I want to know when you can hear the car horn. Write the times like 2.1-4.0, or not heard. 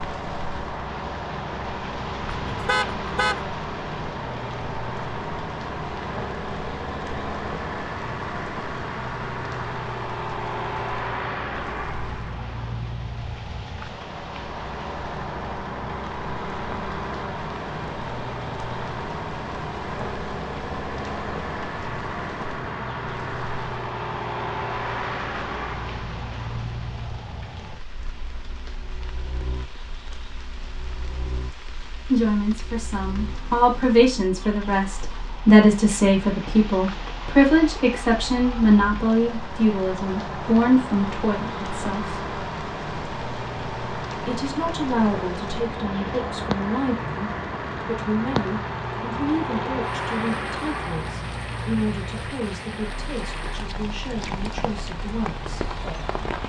2.2-3.5.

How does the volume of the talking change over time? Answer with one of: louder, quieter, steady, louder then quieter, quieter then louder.
quieter.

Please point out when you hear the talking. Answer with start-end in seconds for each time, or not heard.
32.0-42.2, 44.2-55.7.